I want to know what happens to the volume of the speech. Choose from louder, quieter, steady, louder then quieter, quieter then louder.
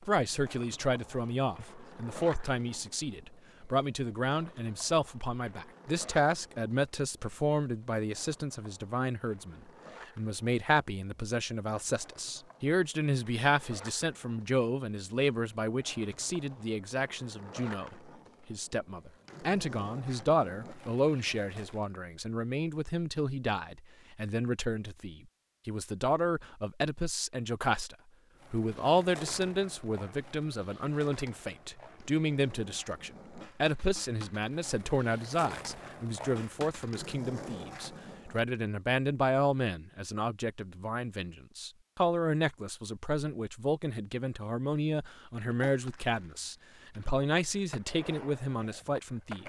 steady.